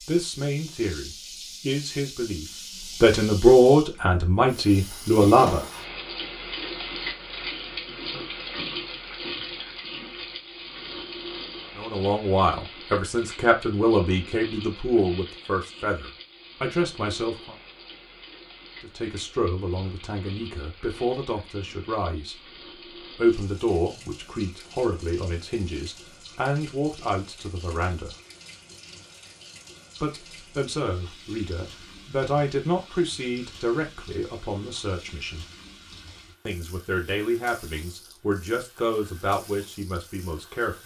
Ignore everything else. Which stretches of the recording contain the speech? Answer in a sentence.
You can hear the speech from 0.0 to 5.7 s, from 11.8 to 17.6 s, from 18.8 to 22.4 s, from 23.1 to 28.1 s, from 30.0 to 35.5 s and from 36.5 to 40.8 s.